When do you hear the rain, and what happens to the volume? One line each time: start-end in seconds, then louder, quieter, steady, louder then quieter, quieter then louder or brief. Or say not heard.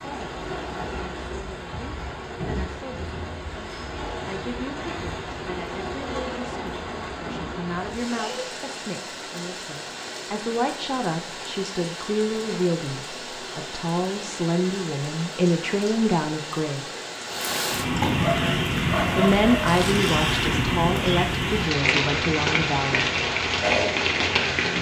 0.0-24.7 louder.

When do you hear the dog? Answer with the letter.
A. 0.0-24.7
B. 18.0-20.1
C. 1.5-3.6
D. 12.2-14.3
B.